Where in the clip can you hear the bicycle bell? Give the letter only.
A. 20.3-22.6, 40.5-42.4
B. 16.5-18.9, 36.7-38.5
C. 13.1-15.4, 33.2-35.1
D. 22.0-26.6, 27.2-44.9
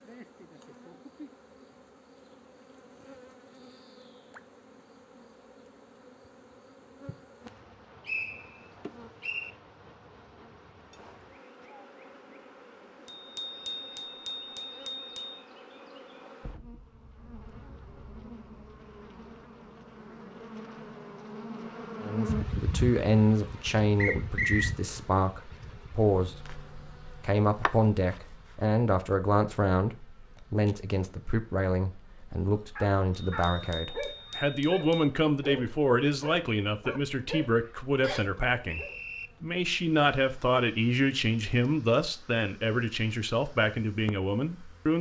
C.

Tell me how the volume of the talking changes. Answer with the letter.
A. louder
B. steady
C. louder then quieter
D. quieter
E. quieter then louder
B.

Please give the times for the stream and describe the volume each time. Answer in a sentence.
The stream can't be heard in this clip.